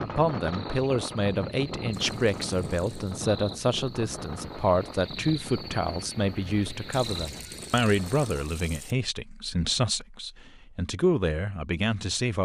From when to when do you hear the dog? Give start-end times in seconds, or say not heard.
not heard.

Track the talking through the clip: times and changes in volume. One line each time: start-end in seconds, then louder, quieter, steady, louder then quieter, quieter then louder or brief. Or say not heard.
0.0-12.4 steady.